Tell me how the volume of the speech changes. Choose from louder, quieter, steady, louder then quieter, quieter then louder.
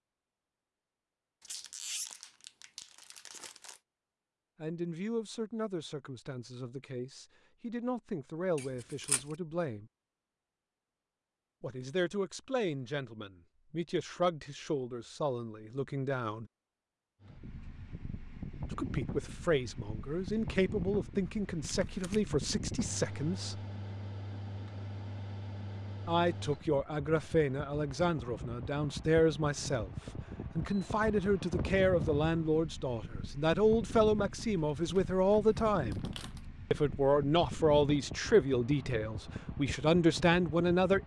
louder.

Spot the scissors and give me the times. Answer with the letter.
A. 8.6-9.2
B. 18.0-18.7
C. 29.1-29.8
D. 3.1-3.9
A.